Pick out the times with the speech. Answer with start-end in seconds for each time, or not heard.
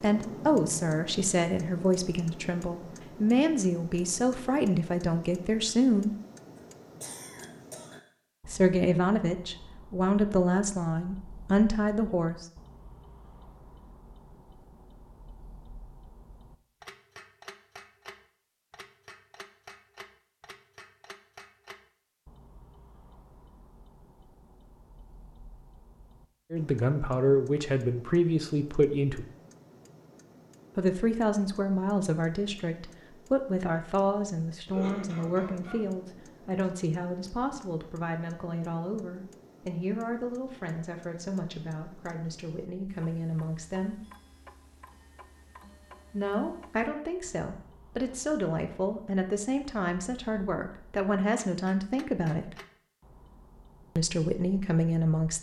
0.0-6.2, 8.4-12.4, 26.5-29.2, 30.8-44.0, 46.1-52.5, 54.0-55.3.